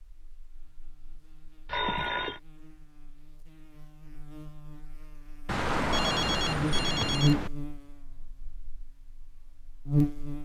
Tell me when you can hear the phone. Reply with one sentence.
The phone can be heard from 1.6 to 2.4 s and from 5.5 to 7.5 s.